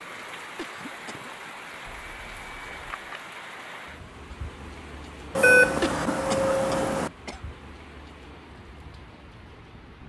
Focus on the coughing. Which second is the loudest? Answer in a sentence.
The loudest moment of the coughing is at 6 seconds.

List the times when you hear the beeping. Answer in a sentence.
The beeping can be heard from 1.9 to 3.2 s and from 5.3 to 7.1 s.